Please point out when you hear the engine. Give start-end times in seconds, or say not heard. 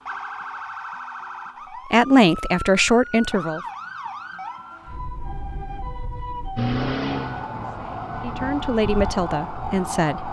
6.5-8.5.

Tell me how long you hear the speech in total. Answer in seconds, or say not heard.
4 s.